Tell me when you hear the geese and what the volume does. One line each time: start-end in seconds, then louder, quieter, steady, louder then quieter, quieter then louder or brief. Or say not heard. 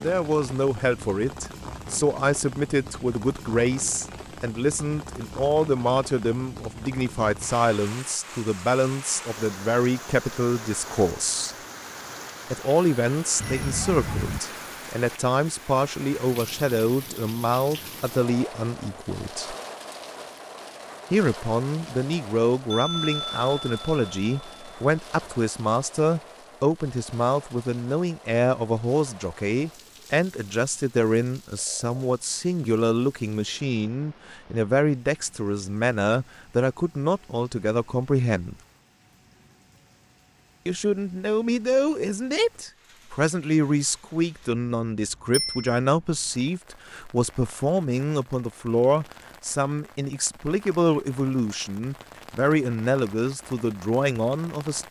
not heard.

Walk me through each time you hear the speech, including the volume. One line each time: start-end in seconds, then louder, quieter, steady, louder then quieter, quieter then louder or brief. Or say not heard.
0.0-11.6 steady
12.5-19.6 steady
21.1-38.5 steady
40.6-54.8 steady.